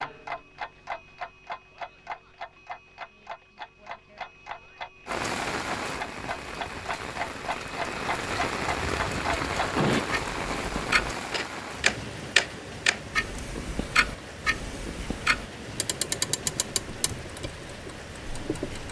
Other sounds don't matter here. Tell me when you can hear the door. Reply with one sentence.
You can't hear the door here.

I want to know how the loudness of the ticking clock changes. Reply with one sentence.
The volume of the ticking clock goes up, then down.